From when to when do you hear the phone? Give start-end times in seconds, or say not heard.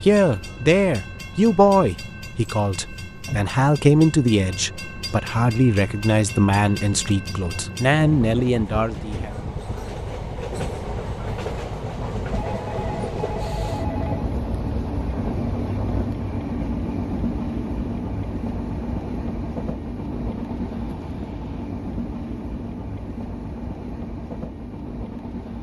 12.3-14.3.